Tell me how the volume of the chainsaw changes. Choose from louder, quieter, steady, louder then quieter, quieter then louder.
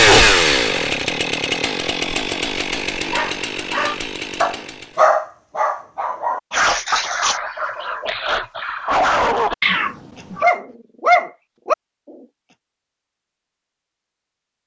quieter.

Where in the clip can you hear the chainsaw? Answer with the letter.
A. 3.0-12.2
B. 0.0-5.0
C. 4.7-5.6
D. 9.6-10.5
B.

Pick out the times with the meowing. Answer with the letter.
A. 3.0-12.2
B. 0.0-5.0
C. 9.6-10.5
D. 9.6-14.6
C.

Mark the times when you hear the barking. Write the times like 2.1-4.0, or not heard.
3.0-12.2.